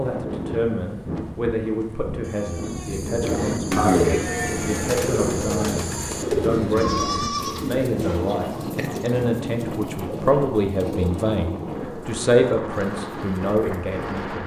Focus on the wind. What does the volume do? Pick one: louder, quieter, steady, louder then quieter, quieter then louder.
steady.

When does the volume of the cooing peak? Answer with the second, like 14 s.
4 s.